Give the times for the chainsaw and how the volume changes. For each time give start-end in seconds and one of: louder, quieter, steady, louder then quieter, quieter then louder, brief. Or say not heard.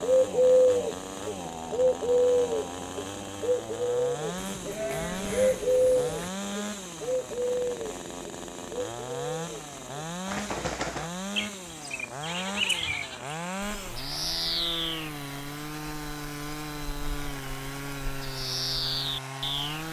0.0-19.8 steady.